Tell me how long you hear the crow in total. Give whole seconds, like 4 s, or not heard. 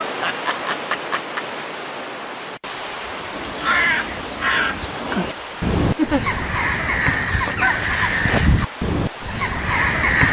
7 s.